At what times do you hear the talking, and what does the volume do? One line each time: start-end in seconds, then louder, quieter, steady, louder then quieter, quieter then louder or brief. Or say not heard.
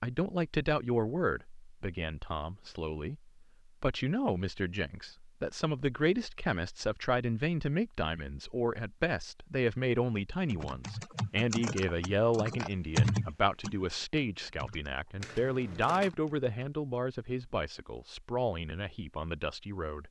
0.0-20.0 steady.